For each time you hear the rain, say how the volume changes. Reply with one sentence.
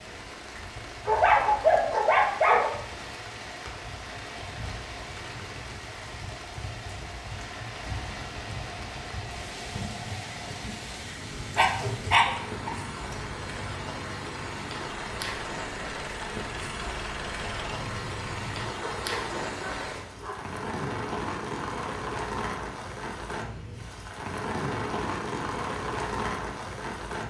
The rain can be heard from 0.0 to 27.2 s, getting louder.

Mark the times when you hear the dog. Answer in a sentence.
You can hear the dog from 1.1 to 2.7 s, from 11.6 to 12.7 s and from 18.8 to 20.4 s.